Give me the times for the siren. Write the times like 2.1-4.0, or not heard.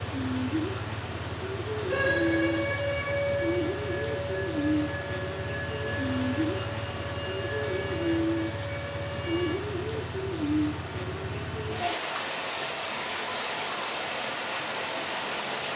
1.9-9.6.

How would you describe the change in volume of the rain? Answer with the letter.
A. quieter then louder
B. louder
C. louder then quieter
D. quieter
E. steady
E.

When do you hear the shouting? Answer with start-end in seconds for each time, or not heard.
not heard.